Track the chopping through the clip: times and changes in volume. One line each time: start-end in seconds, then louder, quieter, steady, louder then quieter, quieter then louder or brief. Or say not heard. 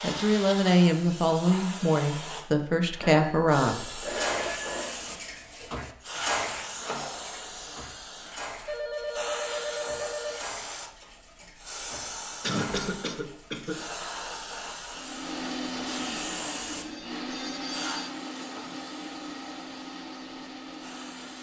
not heard.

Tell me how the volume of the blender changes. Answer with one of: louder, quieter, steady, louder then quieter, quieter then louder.
quieter.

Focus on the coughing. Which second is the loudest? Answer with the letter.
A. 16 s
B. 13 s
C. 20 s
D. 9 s
B.